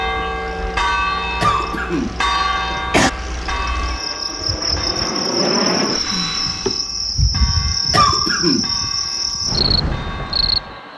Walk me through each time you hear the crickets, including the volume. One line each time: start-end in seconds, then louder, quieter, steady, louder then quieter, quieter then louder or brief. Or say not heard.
0.0-10.9 louder.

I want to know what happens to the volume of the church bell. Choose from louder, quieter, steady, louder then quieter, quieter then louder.
quieter.